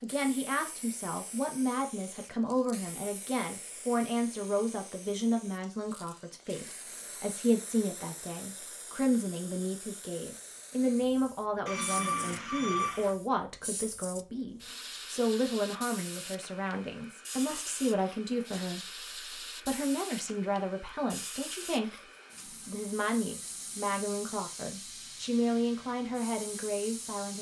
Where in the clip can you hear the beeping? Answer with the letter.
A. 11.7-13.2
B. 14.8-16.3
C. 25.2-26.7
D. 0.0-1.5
A.